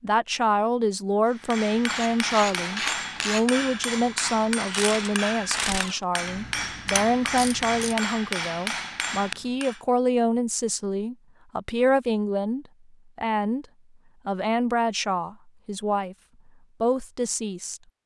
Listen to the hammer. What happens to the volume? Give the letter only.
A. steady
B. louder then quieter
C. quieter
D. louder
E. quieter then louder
A.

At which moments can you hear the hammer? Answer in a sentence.
The hammer can be heard from 1.2 to 9.8 s.